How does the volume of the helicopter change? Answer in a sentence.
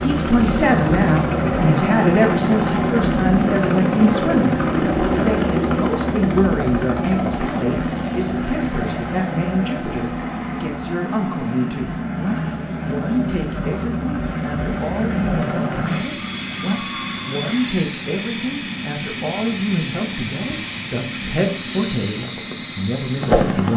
The volume of the helicopter goes down.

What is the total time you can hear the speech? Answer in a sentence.
The speech can be heard for 24 seconds in total.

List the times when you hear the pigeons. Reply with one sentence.
The pigeons can't be heard in this clip.